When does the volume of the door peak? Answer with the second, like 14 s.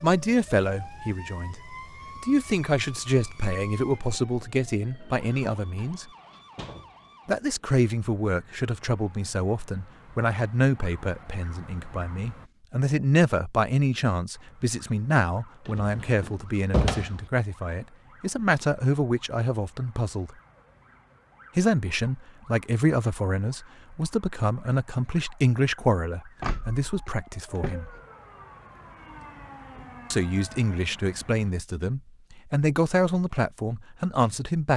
17 s.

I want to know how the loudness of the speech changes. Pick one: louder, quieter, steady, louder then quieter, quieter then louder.
steady.